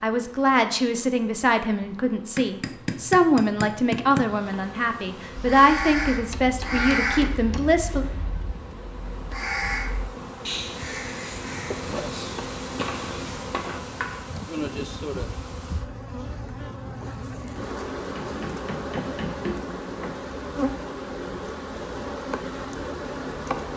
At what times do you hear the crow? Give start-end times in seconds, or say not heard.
5.3-13.4.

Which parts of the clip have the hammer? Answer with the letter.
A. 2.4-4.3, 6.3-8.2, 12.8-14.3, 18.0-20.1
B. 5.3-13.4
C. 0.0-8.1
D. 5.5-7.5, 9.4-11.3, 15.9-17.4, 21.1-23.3
A.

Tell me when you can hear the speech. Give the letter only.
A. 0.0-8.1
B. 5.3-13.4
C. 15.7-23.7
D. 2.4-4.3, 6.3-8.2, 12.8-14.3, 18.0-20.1
A.